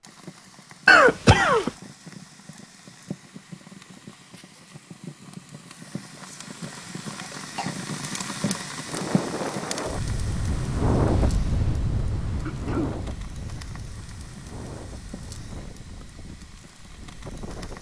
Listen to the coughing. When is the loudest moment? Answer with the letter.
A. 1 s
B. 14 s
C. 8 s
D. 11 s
A.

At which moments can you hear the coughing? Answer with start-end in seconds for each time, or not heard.
0.8-1.7, 7.2-7.8, 12.4-12.9.